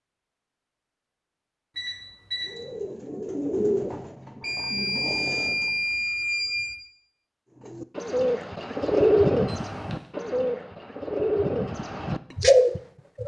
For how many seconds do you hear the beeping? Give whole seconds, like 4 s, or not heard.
4 s.